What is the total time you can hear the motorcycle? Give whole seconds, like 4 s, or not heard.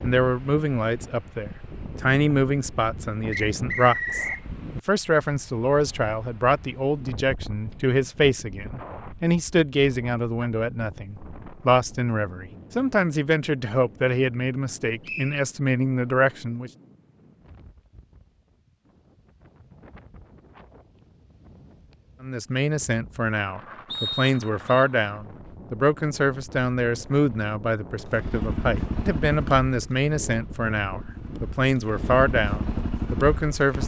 6 s.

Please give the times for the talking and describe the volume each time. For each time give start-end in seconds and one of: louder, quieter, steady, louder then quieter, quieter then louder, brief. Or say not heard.
0.0-16.7 steady
22.2-33.8 steady.